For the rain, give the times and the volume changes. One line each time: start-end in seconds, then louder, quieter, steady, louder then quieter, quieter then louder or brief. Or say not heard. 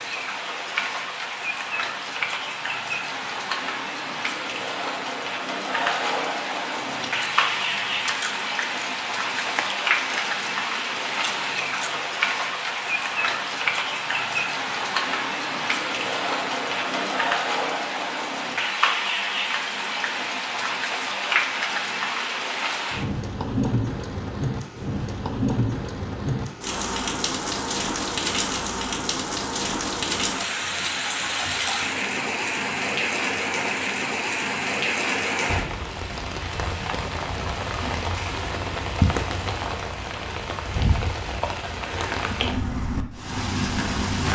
0.0-44.3 steady.